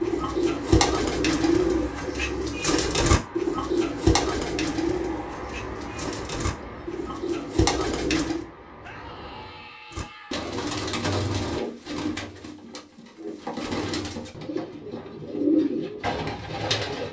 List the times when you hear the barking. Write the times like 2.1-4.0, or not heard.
not heard.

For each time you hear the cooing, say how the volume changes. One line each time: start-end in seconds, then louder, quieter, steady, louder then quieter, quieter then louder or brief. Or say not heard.
0.0-8.4 quieter then louder
9.9-17.0 quieter then louder.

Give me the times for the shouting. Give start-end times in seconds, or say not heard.
8.8-10.4.